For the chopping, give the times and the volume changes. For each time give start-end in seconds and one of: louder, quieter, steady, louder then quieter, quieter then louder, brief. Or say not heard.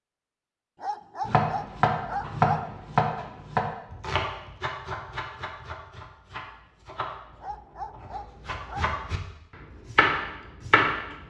1.2-11.2 quieter then louder.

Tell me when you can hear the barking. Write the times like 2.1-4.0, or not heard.
0.8-2.5, 7.4-8.8.